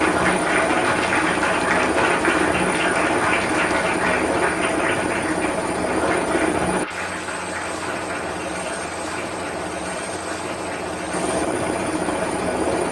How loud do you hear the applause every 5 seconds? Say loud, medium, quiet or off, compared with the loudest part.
loud, medium, quiet.